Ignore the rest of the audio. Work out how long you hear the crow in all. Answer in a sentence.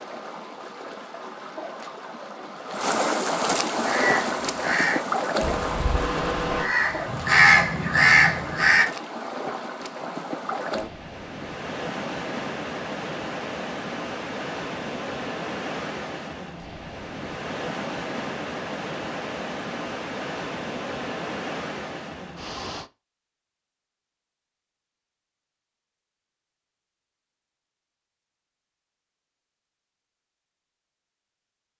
You can hear the crow for 5 seconds altogether.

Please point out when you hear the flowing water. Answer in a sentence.
The flowing water can be heard from 0.0 to 22.9 s.